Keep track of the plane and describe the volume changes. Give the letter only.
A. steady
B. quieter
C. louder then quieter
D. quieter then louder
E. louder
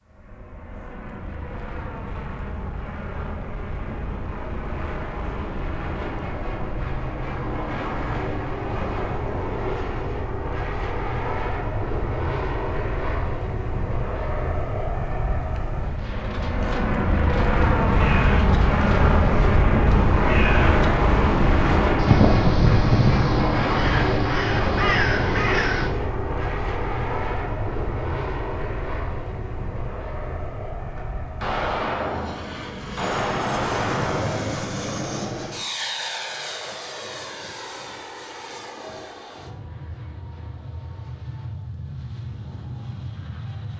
C.